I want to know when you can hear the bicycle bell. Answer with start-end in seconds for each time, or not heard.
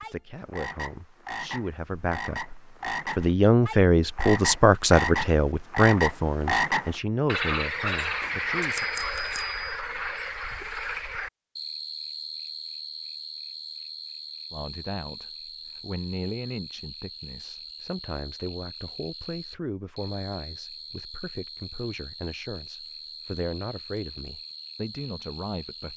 8.2-9.8.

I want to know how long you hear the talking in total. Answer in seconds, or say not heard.
20 s.